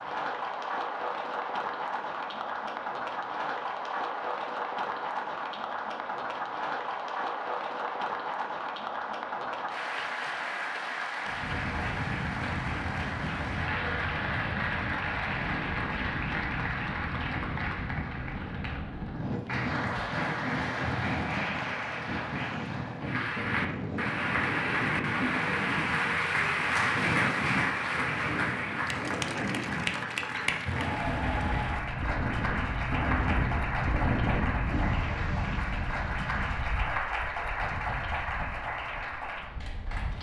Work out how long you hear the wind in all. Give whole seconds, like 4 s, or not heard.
29 s.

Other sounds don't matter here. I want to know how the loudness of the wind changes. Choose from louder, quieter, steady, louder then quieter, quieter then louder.
steady.